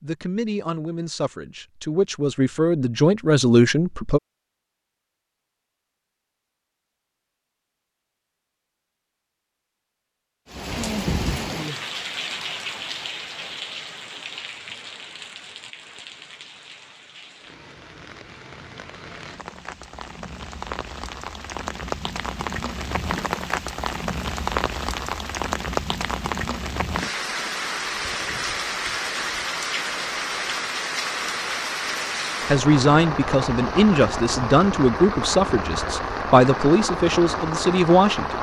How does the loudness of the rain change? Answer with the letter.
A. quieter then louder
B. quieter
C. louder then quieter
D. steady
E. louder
A.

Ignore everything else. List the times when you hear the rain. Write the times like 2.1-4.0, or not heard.
10.4-38.3.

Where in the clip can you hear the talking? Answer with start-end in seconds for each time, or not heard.
0.0-4.2, 32.5-38.3.